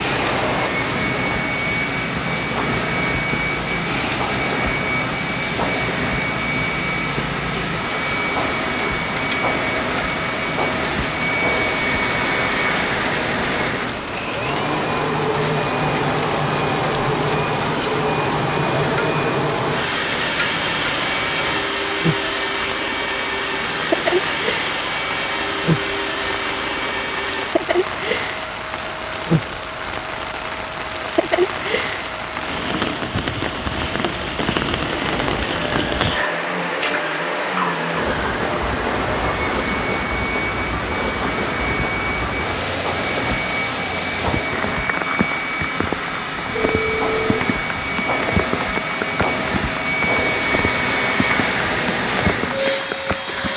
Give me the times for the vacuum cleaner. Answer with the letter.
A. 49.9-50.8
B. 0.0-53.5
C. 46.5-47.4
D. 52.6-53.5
B.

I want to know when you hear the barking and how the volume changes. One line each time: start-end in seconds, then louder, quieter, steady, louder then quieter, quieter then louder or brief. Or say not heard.
not heard.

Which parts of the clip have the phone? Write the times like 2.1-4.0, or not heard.
46.5-47.4.